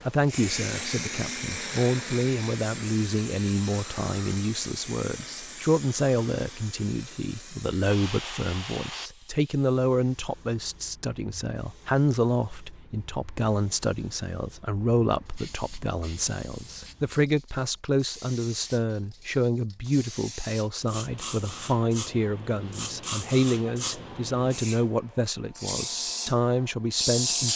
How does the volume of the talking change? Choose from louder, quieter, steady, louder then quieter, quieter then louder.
steady.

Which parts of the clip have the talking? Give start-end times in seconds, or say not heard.
0.0-27.5.